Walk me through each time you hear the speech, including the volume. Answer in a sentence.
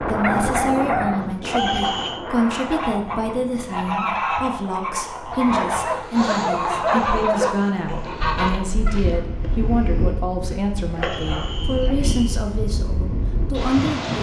You can hear the speech from 0.0 to 14.1 s, at a steady volume.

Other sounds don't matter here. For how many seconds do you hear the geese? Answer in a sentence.
You can hear the geese for 7 seconds altogether.